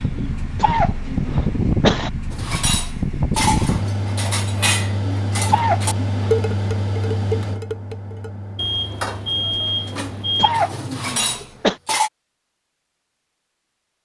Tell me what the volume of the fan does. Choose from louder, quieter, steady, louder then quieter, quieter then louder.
quieter.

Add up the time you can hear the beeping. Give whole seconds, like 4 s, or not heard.
2 s.